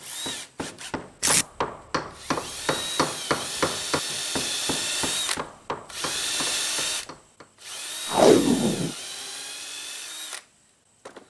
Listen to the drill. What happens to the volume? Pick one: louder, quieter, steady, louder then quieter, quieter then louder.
louder then quieter.